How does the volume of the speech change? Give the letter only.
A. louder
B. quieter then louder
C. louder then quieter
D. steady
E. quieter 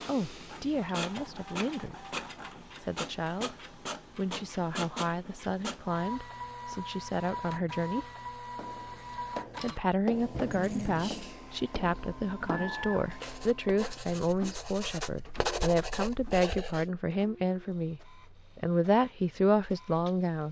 A.